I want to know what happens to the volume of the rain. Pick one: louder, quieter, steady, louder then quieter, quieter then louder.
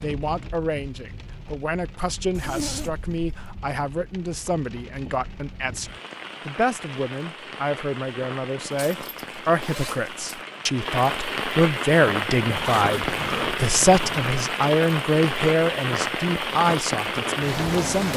louder.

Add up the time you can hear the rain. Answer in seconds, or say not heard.
18 s.